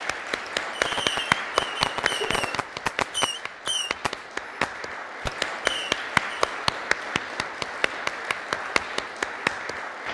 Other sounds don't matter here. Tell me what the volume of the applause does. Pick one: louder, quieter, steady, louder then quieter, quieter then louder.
quieter then louder.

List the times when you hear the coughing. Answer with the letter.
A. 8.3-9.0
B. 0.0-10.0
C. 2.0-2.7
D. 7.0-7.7
C.